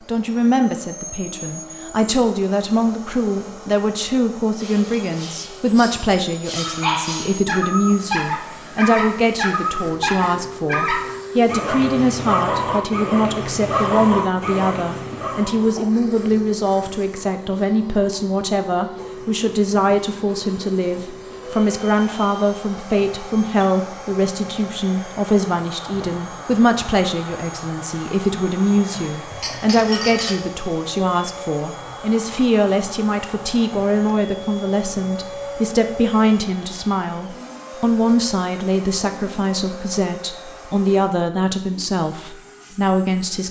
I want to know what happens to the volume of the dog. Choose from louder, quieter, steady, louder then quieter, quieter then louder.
steady.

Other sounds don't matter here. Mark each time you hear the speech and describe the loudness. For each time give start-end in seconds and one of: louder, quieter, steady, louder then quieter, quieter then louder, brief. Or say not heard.
0.1-43.4 steady.